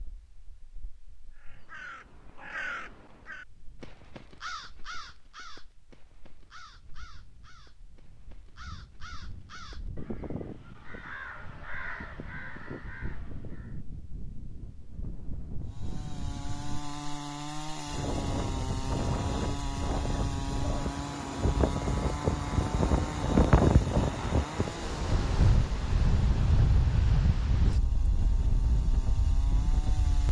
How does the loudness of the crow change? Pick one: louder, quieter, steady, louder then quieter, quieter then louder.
quieter then louder.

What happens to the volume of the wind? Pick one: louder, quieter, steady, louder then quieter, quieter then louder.
louder.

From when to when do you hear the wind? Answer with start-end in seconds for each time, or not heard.
0.0-30.2.